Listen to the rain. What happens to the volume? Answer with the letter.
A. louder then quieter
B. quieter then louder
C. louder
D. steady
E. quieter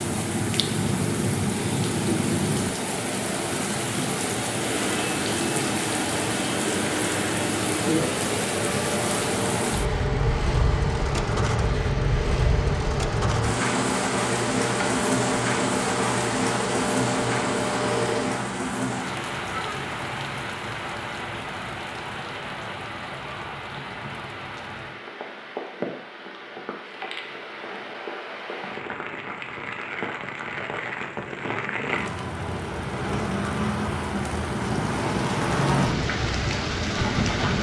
B.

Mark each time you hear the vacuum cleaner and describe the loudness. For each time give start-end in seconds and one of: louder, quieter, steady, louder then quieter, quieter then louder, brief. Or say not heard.
4.5-18.4 steady.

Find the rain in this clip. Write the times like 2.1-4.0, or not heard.
0.0-37.5.